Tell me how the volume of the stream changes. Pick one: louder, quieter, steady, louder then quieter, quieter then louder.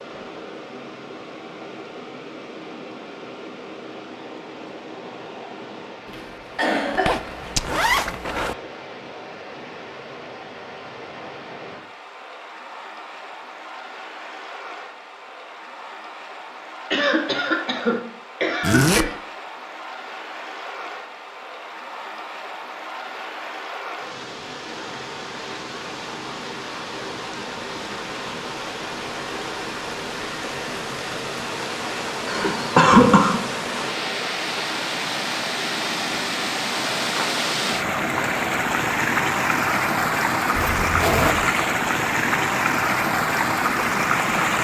louder.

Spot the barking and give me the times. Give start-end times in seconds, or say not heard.
not heard.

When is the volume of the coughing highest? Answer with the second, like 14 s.
33 s.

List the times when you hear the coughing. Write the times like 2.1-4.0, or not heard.
6.0-7.2, 16.9-19.1, 32.2-33.4.